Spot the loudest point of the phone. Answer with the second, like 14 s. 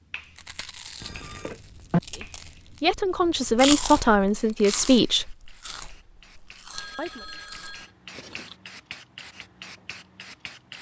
2 s.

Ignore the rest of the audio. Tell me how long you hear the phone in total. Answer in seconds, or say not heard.
2 s.